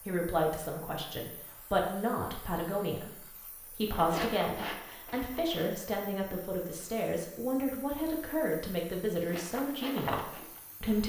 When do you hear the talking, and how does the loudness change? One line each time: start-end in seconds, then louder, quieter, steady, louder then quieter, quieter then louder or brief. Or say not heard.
0.0-11.0 steady.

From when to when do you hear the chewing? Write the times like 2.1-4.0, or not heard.
3.9-5.7, 9.2-11.0.